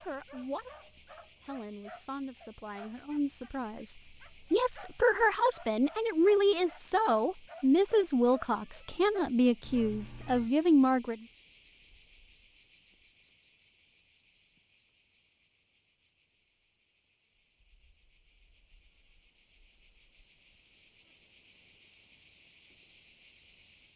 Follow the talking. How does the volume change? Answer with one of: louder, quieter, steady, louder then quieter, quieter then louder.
louder.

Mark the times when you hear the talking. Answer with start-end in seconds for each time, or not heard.
0.0-11.2.